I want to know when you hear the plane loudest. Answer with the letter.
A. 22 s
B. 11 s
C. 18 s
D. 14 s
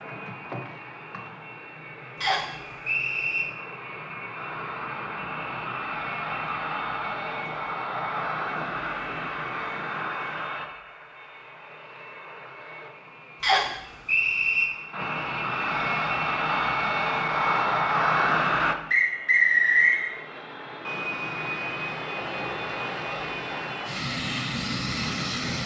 C.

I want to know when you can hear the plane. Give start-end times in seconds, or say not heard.
0.0-25.6.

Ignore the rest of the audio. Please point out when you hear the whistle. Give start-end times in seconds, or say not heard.
2.2-3.5, 13.4-14.7, 18.9-20.0.